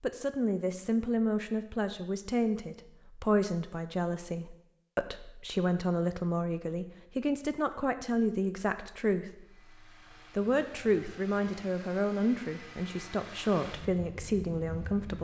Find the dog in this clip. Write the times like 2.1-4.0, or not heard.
not heard.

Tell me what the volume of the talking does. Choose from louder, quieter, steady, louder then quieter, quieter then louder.
steady.